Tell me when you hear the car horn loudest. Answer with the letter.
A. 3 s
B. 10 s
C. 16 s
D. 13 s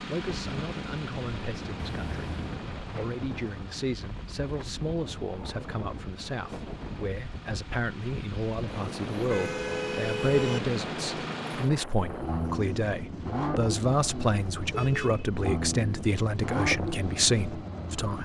B.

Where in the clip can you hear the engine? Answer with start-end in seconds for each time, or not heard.
0.0-18.2.